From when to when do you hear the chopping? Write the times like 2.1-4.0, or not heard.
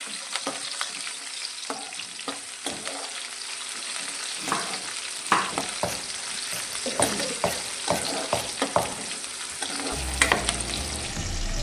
4.4-11.5.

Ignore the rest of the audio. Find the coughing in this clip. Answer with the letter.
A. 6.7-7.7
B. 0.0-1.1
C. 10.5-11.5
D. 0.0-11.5
A.